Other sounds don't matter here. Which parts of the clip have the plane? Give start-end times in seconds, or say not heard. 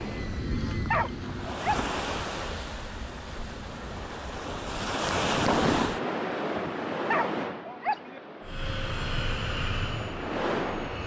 0.0-4.3, 8.4-11.0.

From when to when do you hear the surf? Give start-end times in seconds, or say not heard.
0.0-11.0.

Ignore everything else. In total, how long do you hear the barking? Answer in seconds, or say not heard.
2 s.